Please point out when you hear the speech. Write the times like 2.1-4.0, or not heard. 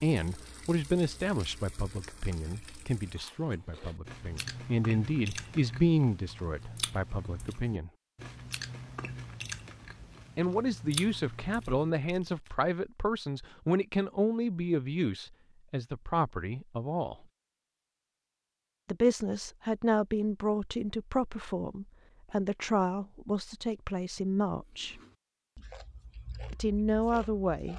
0.0-7.9, 10.3-17.1, 18.9-25.0, 26.5-27.7.